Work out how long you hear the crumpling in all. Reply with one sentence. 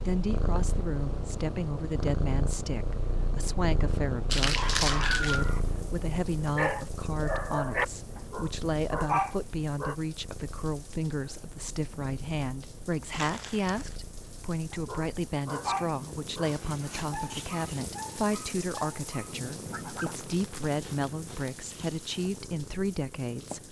The crumpling can be heard for 4 seconds in total.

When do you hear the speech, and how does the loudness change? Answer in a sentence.
You can hear the speech from 0.1 to 23.6 s, at a steady volume.